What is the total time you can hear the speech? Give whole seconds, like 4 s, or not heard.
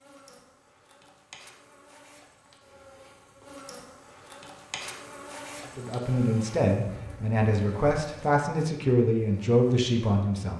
5 s.